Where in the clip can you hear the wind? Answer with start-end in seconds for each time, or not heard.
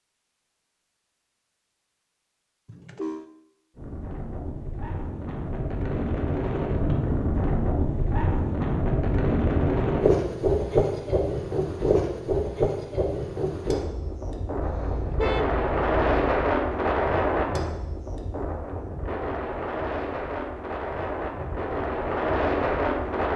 3.8-23.3.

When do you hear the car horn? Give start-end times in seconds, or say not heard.
2.6-3.3, 14.6-16.4.